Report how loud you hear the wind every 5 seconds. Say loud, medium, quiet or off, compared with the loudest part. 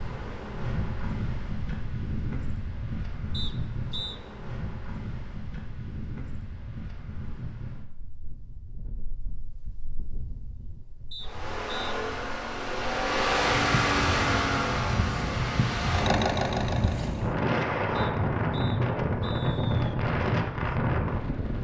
medium, quiet, medium, loud, loud.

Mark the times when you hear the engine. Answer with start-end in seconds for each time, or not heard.
11.2-17.2.